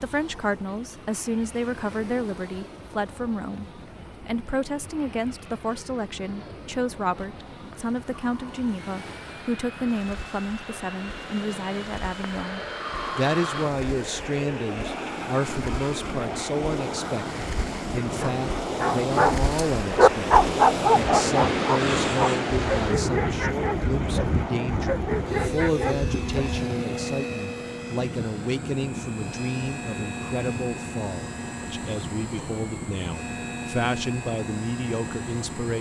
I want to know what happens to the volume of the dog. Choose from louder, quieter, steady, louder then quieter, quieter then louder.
louder then quieter.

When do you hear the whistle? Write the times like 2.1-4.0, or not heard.
not heard.